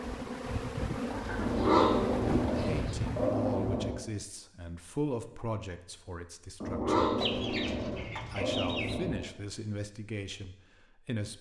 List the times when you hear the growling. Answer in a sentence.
The growling can be heard from 1.4 to 4.0 s and from 6.6 to 9.2 s.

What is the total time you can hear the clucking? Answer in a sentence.
The clucking can be heard for 4 seconds in total.